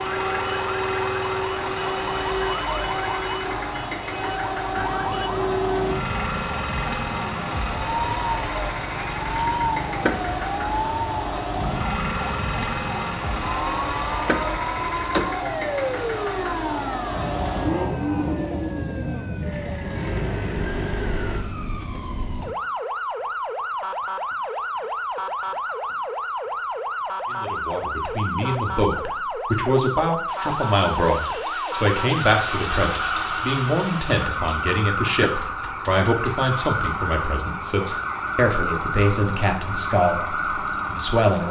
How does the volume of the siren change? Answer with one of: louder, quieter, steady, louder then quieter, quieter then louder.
steady.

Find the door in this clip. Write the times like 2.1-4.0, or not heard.
9.8-10.3, 14.1-15.5, 35.0-35.8.